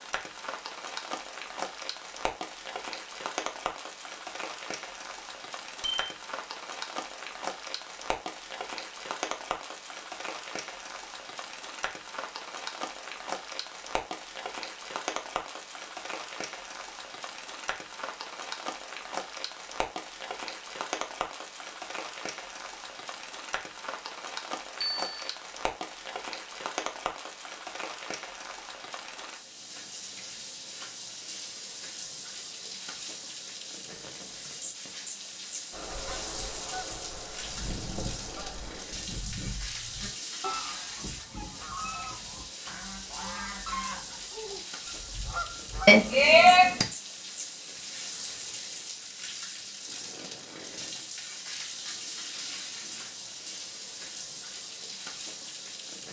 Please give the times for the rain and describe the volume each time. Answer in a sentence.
You can hear the rain from 0.0 to 56.0 s, at a steady volume.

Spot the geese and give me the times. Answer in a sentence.
You can hear the geese from 35.7 to 46.0 s.